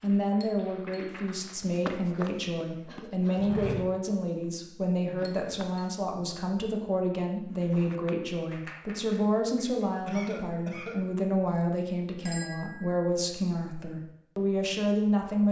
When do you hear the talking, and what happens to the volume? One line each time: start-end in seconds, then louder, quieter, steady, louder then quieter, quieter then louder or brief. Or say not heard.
0.0-15.4 steady.